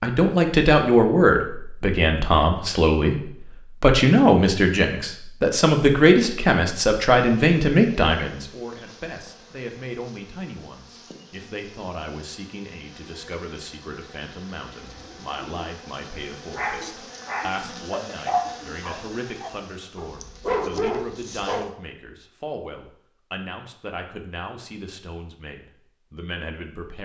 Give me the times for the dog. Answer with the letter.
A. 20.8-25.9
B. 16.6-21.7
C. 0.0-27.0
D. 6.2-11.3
B.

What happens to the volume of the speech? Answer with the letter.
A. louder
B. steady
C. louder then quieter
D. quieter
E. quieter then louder
D.